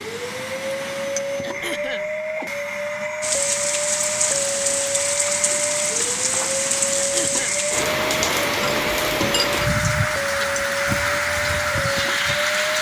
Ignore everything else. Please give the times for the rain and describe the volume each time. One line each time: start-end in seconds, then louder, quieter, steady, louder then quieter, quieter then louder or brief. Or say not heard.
3.2-12.7 steady.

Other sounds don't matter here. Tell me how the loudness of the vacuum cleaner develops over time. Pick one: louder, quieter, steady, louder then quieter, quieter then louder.
steady.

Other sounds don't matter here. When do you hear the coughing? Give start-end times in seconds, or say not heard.
1.4-2.1, 7.0-7.6.